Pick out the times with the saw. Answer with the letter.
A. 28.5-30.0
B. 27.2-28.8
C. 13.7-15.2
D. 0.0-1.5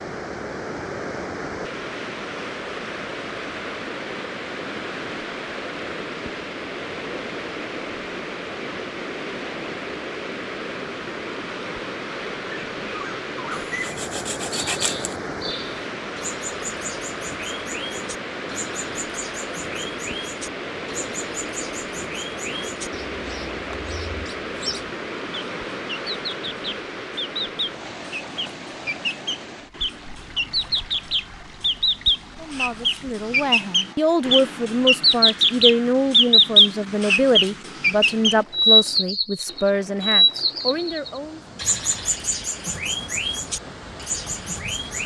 C.